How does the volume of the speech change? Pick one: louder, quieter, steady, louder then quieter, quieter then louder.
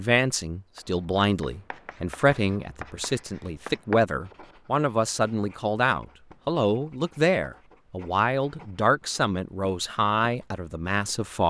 steady.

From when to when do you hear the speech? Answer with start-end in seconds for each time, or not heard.
0.0-11.4.